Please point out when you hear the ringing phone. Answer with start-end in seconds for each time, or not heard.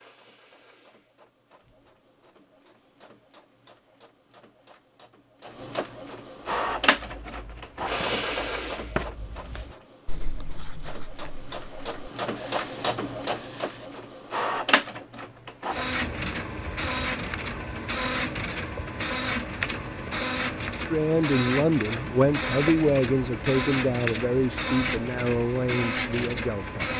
not heard.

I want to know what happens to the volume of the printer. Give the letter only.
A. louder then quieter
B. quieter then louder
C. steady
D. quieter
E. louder
E.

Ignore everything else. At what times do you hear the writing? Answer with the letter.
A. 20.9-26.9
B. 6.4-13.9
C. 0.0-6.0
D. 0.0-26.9
B.